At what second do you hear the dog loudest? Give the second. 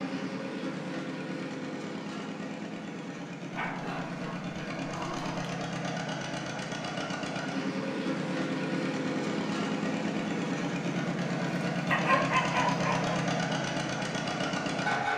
12 s.